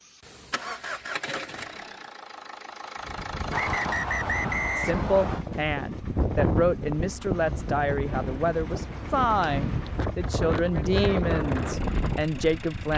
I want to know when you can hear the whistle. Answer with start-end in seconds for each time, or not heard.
3.5-5.5.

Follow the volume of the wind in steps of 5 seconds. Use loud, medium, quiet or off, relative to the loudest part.
medium, loud, loud.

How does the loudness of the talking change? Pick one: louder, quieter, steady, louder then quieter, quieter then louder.
steady.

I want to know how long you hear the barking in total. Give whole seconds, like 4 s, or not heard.
not heard.